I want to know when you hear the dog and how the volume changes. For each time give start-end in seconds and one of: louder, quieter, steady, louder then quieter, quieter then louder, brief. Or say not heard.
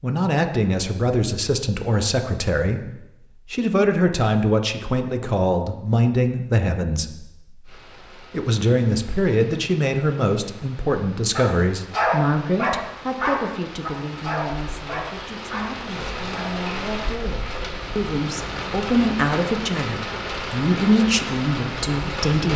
11.3-16.6 quieter.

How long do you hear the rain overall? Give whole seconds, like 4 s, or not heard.
15 s.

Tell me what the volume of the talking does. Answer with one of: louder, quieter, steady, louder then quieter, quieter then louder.
quieter then louder.